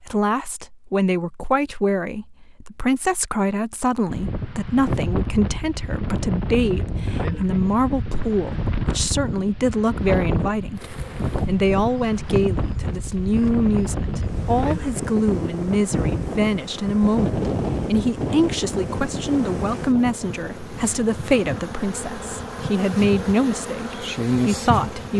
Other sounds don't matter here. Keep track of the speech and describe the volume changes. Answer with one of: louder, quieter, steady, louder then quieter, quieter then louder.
steady.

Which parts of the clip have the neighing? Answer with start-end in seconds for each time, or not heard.
not heard.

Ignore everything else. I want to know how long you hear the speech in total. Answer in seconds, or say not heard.
25 s.